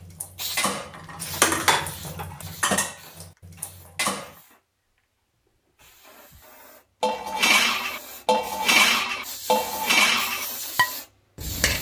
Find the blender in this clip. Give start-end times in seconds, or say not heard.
not heard.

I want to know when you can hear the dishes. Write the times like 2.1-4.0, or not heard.
0.0-4.4, 7.0-11.7.